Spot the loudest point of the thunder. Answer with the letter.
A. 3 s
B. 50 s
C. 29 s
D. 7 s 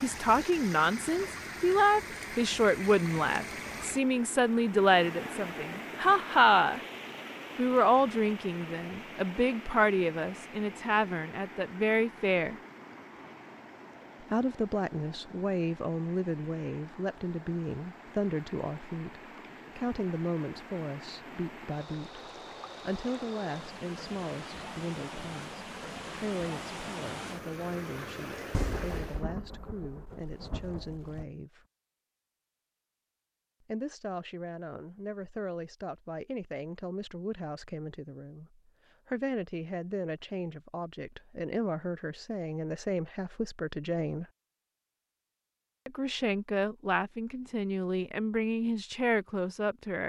C.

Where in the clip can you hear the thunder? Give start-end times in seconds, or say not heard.
28.5-31.2.